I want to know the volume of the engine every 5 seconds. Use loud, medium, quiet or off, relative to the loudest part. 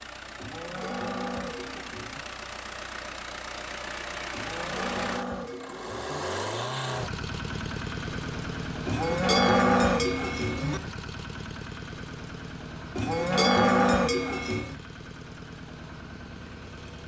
loud, loud, medium, medium.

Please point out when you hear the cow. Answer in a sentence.
You can hear the cow from 0.3 to 2.2 s, from 4.3 to 6.2 s, from 8.8 to 10.8 s and from 12.9 to 14.8 s.